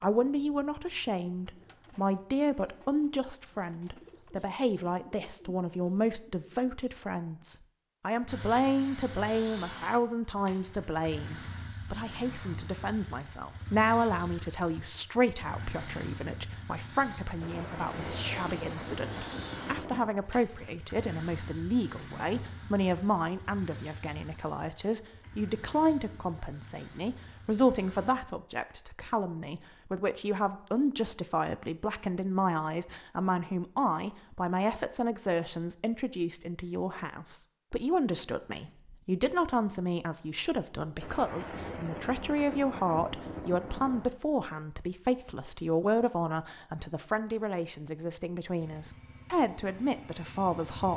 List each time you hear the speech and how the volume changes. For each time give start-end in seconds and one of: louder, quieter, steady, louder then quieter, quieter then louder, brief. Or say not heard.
0.0-50.9 steady.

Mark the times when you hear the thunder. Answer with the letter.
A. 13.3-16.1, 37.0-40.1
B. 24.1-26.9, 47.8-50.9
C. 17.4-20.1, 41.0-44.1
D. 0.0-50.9
C.